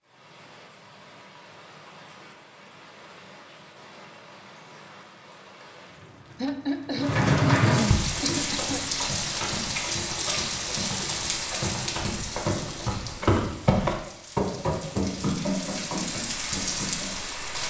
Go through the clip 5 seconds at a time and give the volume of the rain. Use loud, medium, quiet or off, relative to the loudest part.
quiet, loud, medium, medium.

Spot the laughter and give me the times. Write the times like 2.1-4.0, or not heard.
6.4-8.8.